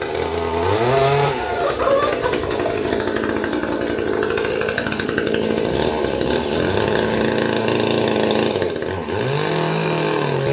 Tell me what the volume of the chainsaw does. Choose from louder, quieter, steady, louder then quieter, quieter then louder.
steady.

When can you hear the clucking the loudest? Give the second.
2 s.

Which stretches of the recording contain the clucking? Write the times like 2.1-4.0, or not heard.
0.8-3.0, 5.4-7.3.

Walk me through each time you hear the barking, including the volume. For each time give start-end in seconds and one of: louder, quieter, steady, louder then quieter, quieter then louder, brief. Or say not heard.
not heard.